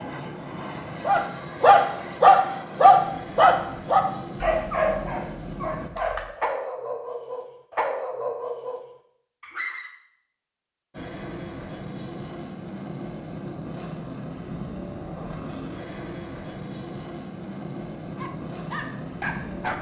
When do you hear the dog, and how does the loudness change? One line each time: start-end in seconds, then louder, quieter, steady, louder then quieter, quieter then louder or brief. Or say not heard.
1.1-9.9 quieter
18.1-19.7 brief.